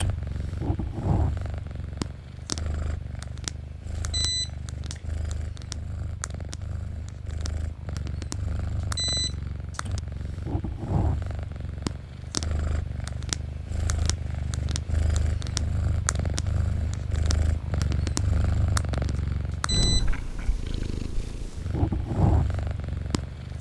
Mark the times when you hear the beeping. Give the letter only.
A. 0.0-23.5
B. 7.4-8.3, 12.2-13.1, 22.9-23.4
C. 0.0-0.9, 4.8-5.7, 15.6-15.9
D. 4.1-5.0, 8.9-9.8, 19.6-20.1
D.